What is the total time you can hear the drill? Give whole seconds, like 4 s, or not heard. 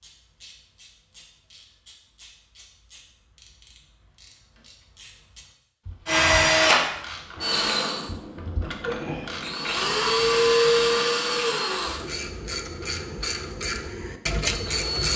9 s.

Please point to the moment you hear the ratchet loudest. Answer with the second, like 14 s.
14 s.